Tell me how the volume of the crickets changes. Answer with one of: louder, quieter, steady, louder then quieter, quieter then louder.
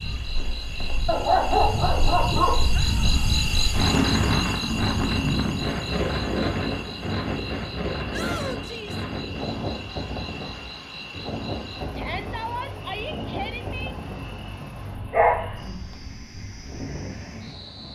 quieter.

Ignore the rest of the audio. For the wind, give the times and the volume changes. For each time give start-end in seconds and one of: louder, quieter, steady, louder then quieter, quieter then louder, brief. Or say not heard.
0.0-17.8 louder then quieter.